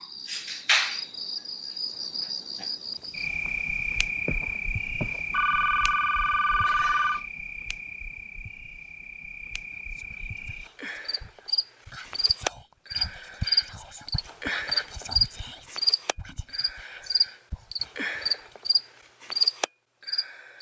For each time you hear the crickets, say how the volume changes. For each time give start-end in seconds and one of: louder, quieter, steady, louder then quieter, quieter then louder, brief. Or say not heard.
0.0-20.5 quieter then louder.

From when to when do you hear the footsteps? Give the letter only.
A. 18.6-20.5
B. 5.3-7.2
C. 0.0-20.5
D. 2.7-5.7
D.